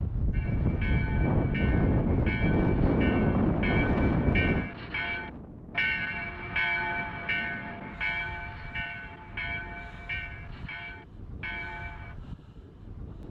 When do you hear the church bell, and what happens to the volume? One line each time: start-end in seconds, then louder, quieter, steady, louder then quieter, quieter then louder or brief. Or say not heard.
0.3-12.2 louder then quieter.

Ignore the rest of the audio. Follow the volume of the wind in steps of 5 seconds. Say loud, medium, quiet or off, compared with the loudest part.
loud, quiet, quiet.